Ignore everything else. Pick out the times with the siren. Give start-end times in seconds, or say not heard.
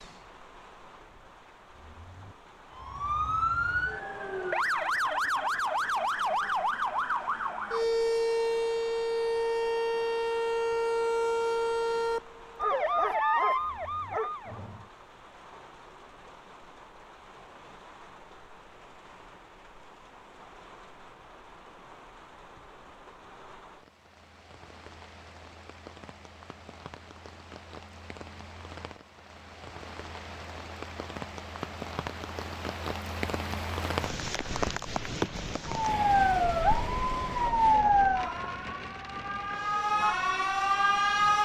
2.8-14.8, 35.7-41.4.